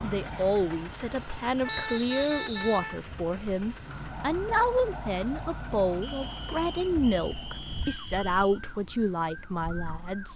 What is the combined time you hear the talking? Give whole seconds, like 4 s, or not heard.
10 s.